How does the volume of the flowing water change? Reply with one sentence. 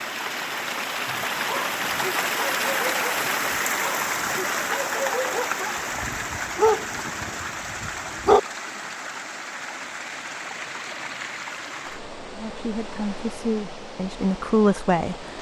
The volume of the flowing water goes down.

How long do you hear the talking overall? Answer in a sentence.
The talking can be heard for 3 seconds in total.